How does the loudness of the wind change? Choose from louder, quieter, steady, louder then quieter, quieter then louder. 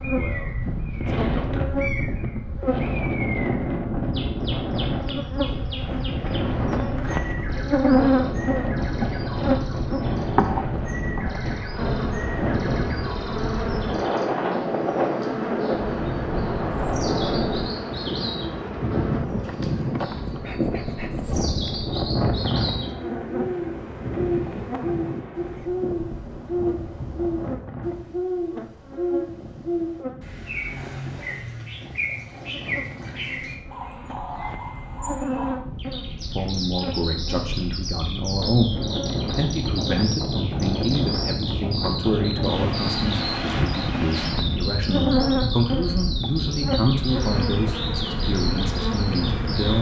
quieter then louder.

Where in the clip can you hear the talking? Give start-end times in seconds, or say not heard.
0.1-1.7, 36.2-38.7, 39.3-49.7.